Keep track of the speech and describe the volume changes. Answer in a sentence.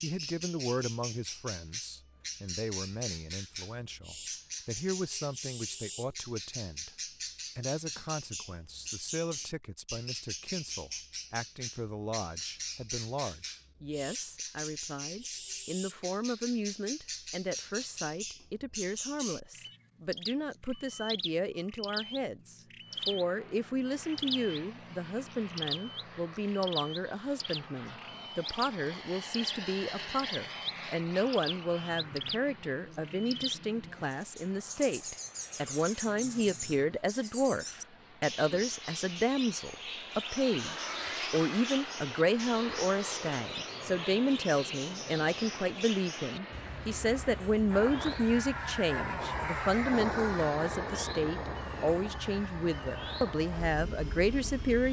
The loudness of the speech goes up.